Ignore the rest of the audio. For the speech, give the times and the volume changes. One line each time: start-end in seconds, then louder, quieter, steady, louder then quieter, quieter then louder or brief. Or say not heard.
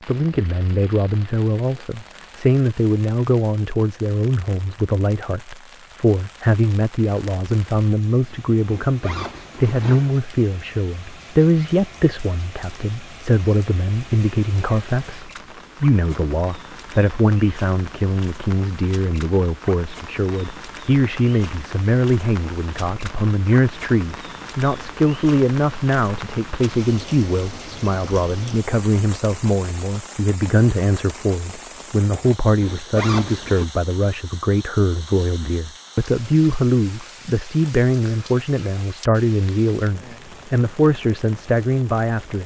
0.1-42.4 steady.